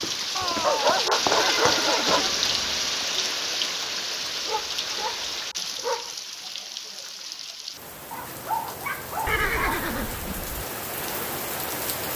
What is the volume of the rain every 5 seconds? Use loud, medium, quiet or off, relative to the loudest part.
loud, medium, medium.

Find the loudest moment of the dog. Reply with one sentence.
The loudest moment of the dog is at 1 second.